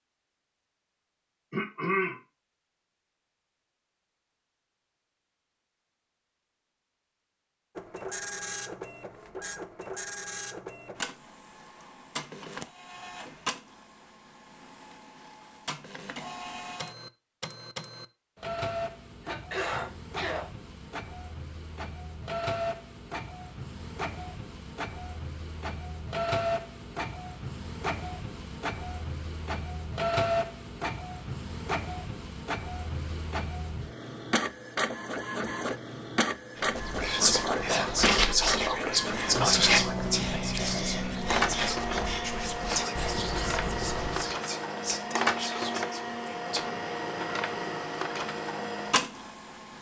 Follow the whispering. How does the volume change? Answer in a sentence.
The loudness of the whispering goes down.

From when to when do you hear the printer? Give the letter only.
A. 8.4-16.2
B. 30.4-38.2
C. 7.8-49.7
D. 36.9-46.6
C.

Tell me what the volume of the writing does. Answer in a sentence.
The loudness of the writing goes down.